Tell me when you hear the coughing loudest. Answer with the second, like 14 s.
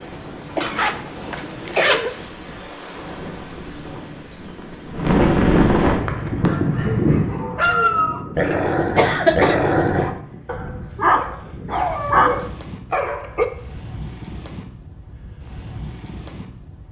9 s.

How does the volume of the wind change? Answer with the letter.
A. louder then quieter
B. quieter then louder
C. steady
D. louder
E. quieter
A.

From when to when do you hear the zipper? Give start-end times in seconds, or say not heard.
0.6-2.0.